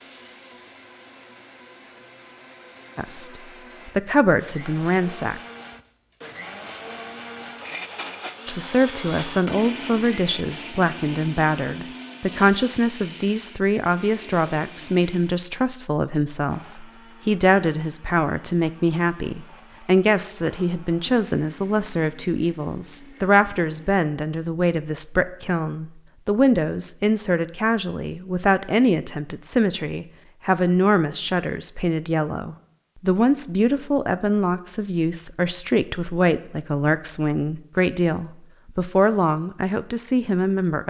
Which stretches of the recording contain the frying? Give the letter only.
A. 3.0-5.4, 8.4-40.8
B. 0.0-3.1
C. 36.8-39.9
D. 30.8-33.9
B.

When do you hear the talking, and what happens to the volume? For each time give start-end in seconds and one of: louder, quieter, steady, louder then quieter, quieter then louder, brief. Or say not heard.
3.0-5.4 brief
8.4-40.8 steady.